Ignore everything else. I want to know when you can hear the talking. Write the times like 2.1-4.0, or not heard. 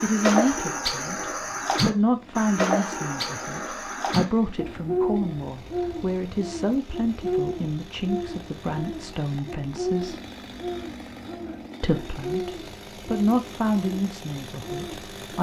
0.0-10.2, 11.8-15.3.